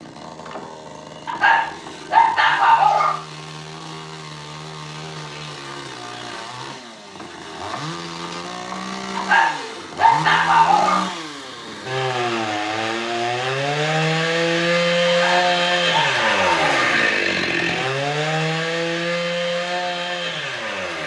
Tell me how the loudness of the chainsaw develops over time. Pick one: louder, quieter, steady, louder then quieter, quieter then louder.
louder.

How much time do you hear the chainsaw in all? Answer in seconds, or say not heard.
21 s.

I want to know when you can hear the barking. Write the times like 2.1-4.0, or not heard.
1.2-3.2, 9.2-11.1, 15.1-17.0.